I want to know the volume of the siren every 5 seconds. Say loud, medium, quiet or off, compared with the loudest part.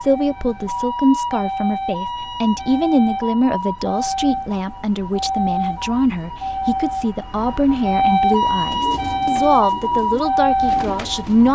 medium, loud, loud.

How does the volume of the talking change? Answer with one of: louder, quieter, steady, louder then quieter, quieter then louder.
steady.